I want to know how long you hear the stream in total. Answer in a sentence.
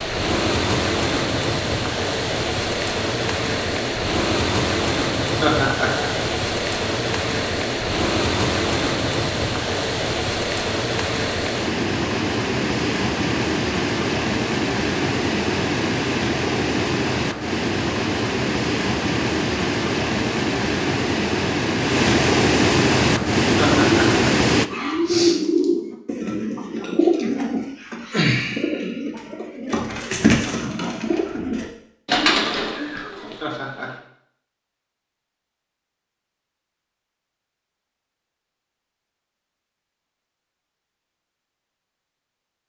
You can hear the stream for 25 seconds altogether.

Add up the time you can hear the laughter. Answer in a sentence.
You can hear the laughter for 2 seconds altogether.